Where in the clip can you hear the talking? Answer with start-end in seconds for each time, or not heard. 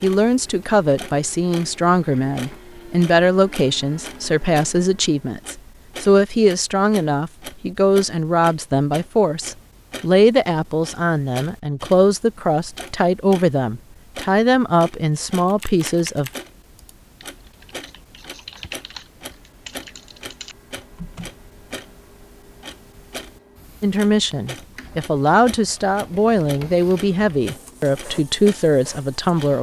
0.0-16.3, 23.8-29.5.